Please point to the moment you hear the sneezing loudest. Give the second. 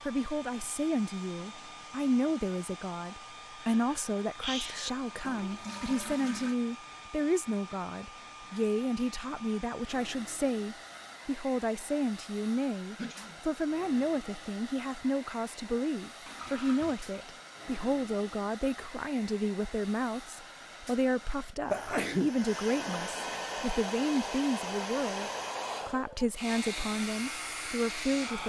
22 s.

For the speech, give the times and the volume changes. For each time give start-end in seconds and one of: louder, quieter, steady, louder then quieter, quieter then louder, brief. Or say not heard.
0.1-28.4 steady.